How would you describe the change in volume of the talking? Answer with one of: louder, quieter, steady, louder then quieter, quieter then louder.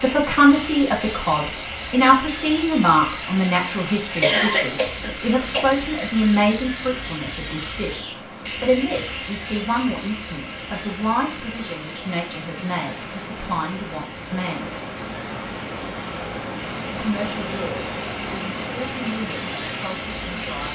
quieter.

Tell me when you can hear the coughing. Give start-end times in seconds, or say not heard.
4.2-5.7.